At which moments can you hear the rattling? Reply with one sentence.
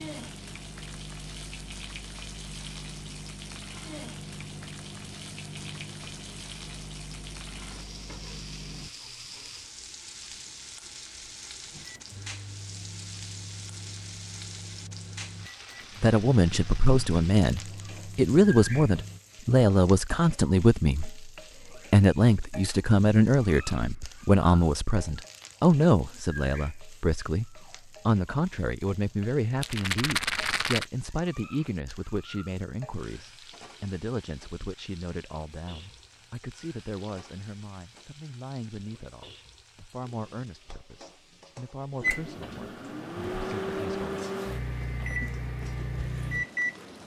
You can hear the rattling from 29.6 to 30.9 s.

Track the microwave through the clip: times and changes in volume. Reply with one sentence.
You can hear the microwave from 0.0 to 8.9 s, at a steady volume; from 11.7 to 19.2 s, at a steady volume; and from 42.0 to 47.0 s, getting louder.